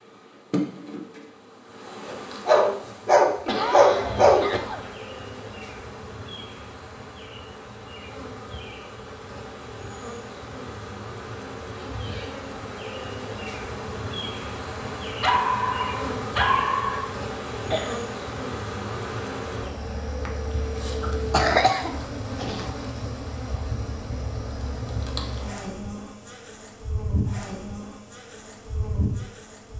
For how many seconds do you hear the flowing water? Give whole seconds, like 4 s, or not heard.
not heard.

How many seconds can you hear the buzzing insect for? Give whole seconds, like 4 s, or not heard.
30 s.